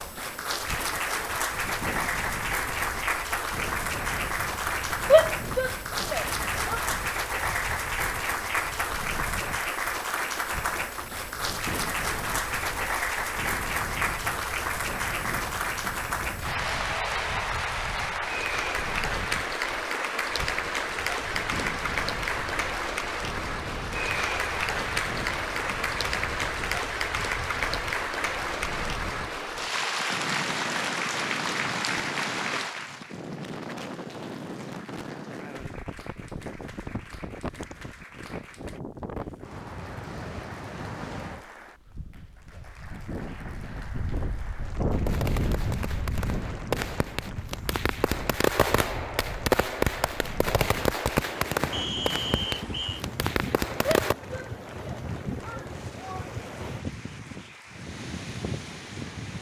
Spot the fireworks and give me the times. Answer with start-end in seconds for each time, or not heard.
44.9-54.1.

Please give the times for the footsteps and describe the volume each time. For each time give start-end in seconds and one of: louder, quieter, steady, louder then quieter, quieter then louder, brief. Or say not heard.
not heard.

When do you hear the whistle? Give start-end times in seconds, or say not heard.
51.7-53.0.